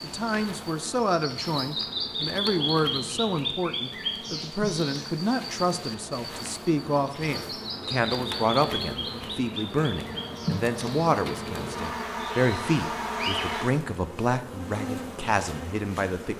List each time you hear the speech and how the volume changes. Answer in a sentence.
The speech can be heard from 0.0 to 16.3 s, at a steady volume.